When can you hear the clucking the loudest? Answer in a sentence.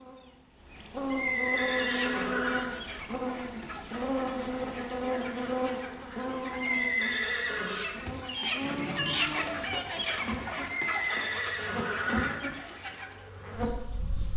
The loudest moment of the clucking is at 9 seconds.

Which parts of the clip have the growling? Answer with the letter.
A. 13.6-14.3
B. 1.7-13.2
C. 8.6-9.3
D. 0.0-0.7
C.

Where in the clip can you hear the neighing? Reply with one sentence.
You can hear the neighing from 1.1 to 2.7 s, from 6.5 to 7.9 s and from 10.8 to 12.4 s.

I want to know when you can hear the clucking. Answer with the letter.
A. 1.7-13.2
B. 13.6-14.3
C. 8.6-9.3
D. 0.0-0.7
A.